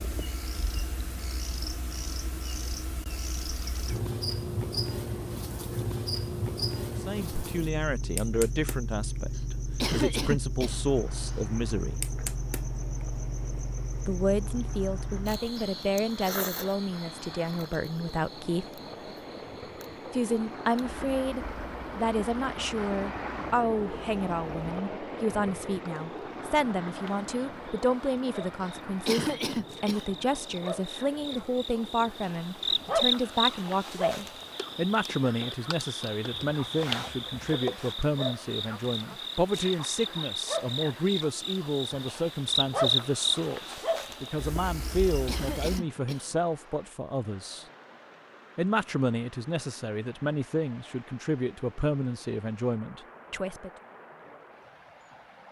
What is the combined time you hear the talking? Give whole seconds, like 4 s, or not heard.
42 s.